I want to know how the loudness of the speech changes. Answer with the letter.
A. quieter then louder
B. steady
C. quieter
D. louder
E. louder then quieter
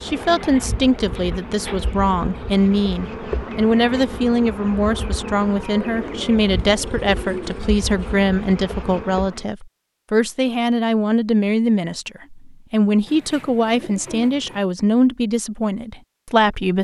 B.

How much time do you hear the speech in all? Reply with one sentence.
The speech can be heard for 17 seconds in total.